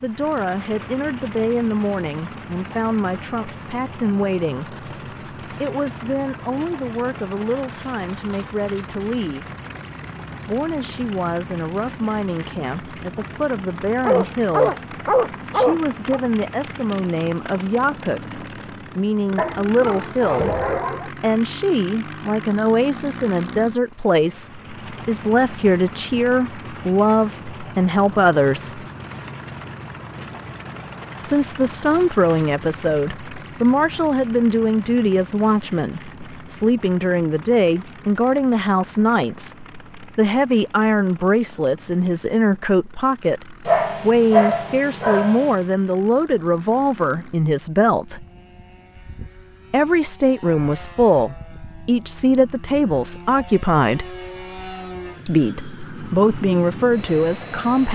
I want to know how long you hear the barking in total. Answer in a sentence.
The barking can be heard for 6 seconds in total.